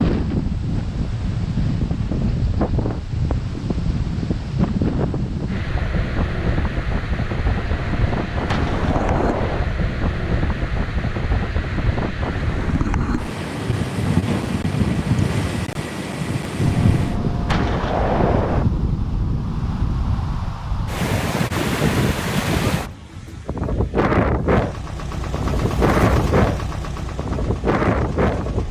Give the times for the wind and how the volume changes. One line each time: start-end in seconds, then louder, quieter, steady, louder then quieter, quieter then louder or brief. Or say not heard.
0.0-28.6 steady.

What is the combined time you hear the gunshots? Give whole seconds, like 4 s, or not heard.
4 s.